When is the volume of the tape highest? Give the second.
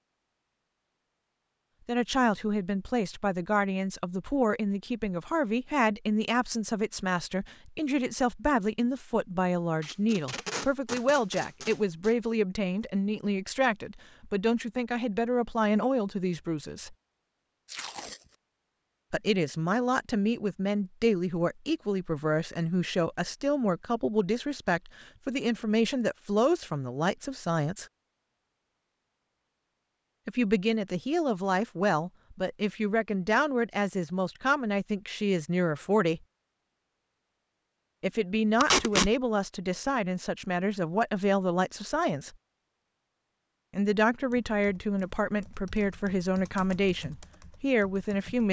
39 s.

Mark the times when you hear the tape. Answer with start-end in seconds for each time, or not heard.
9.8-12.1, 17.6-18.2, 38.6-39.1.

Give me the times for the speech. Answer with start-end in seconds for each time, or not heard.
1.9-16.9, 19.1-27.9, 30.2-36.2, 38.0-42.3, 43.7-48.4.